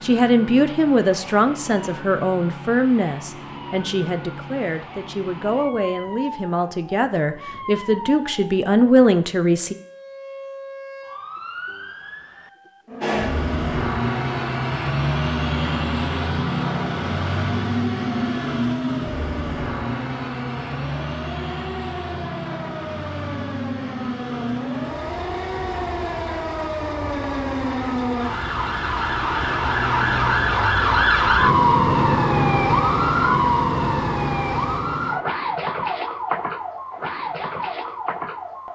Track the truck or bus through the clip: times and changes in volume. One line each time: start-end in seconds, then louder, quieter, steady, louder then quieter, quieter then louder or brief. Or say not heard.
13.0-34.8 quieter.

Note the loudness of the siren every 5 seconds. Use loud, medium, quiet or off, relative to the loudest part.
quiet, quiet, quiet, quiet, quiet, medium, loud, medium.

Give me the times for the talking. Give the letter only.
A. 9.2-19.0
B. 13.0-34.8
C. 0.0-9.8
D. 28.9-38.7
C.